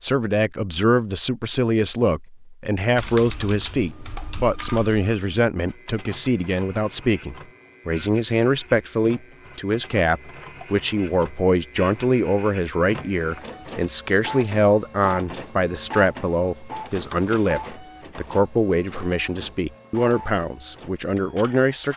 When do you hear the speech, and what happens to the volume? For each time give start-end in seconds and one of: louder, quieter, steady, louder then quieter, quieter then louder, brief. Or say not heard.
0.0-21.9 steady.